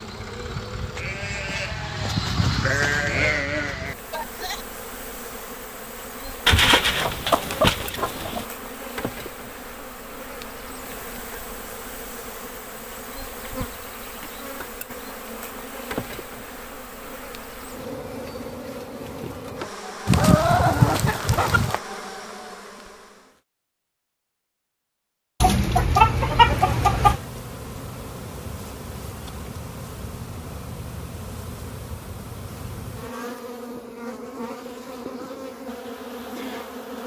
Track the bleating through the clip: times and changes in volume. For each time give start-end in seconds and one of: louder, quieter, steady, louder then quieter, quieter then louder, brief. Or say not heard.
0.0-4.7 louder then quieter.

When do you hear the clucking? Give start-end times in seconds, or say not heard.
6.5-8.4, 20.1-21.8, 25.4-27.2.